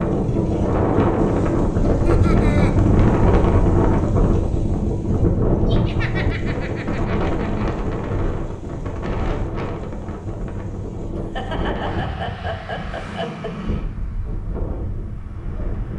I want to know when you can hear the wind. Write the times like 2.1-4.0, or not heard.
0.0-15.9.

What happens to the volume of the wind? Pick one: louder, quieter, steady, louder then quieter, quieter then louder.
quieter.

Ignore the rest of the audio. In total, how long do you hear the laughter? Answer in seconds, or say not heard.
5 s.